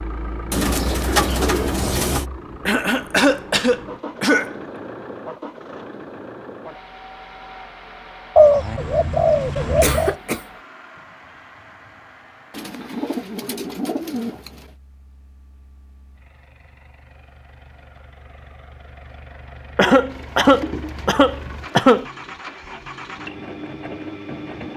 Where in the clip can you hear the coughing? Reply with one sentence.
You can hear the coughing from 2.6 to 4.5 s, from 9.8 to 10.4 s and from 19.8 to 22.1 s.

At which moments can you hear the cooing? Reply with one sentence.
The cooing can be heard from 0.5 to 2.2 s, from 8.3 to 10.2 s, from 12.5 to 14.7 s and from 20.1 to 21.9 s.